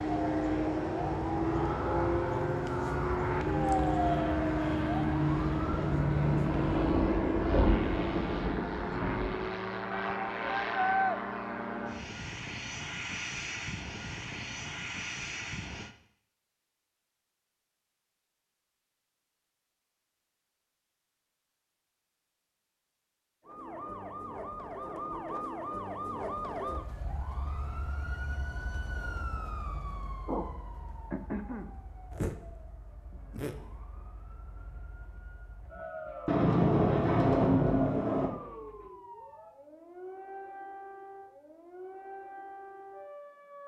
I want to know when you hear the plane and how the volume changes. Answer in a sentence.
The plane can be heard from 0.0 to 15.9 s, getting quieter.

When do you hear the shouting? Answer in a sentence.
You can hear the shouting from 9.9 to 11.2 s.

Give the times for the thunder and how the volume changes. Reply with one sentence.
You can hear the thunder from 5.3 to 9.4 s, getting louder then quieter; and briefly from 36.2 to 38.3 s.